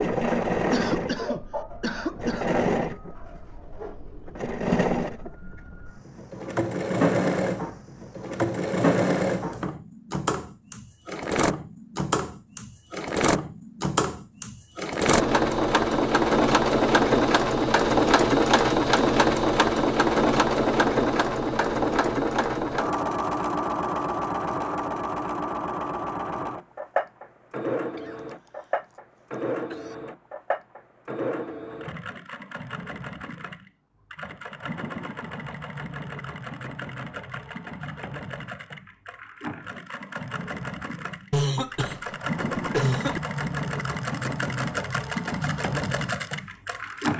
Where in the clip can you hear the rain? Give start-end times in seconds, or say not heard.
not heard.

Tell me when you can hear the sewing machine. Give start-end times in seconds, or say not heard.
0.0-47.1.